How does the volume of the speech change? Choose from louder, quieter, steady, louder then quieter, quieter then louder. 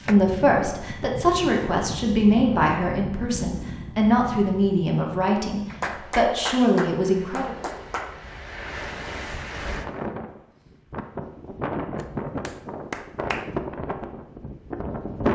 steady.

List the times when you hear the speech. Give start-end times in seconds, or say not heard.
0.0-7.5.